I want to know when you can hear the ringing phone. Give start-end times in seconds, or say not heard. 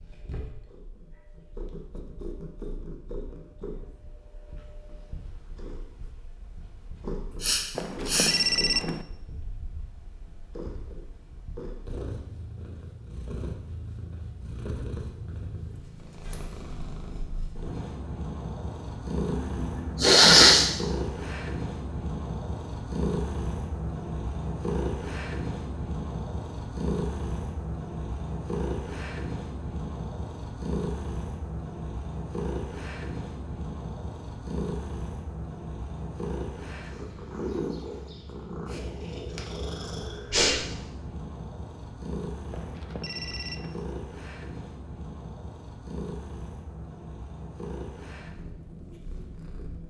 7.8-9.1, 42.5-43.8.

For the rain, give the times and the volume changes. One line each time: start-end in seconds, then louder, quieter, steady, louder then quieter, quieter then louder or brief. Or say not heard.
not heard.